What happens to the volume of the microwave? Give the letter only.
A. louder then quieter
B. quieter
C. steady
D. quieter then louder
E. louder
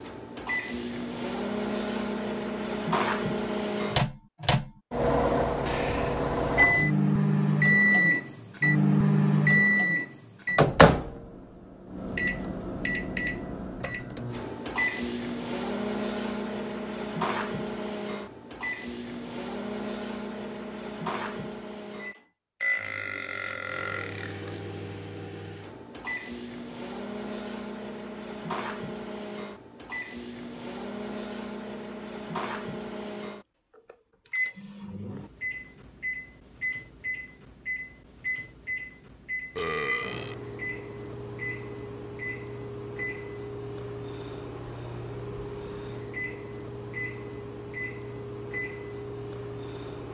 B.